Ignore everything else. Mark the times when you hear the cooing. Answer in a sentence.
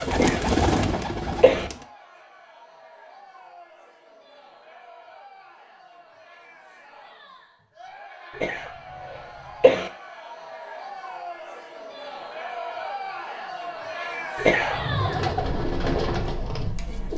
You can hear the cooing from 0.0 to 1.9 s and from 14.7 to 17.1 s.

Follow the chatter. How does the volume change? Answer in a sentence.
The volume of the chatter goes up.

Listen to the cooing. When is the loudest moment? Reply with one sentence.
The volume of the cooing peaks at 1 second.